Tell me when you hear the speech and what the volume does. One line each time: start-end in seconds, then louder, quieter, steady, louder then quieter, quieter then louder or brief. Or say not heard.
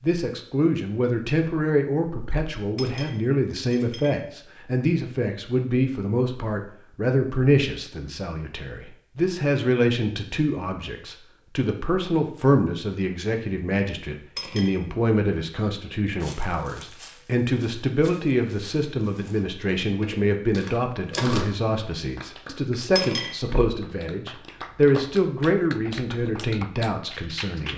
0.0-27.7 steady.